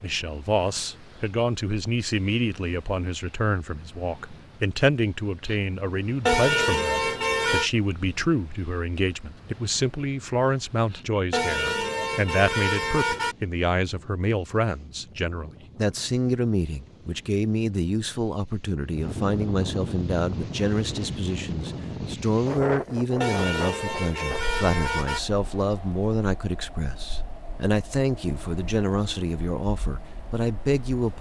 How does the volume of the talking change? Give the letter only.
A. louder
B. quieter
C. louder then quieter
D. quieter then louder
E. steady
E.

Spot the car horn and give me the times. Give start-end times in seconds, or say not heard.
6.2-7.7, 11.3-13.3, 23.2-25.2.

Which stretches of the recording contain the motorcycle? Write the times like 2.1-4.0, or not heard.
not heard.